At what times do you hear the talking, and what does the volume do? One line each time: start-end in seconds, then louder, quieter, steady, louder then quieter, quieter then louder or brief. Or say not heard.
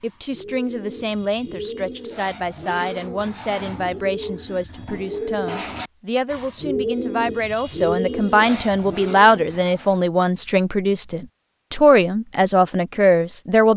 0.0-13.7 louder.